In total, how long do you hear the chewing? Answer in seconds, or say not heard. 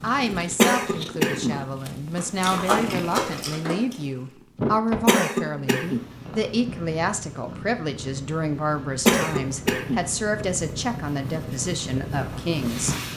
2 s.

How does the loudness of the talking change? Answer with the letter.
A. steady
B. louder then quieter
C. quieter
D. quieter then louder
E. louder
A.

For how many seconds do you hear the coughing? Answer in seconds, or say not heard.
3 s.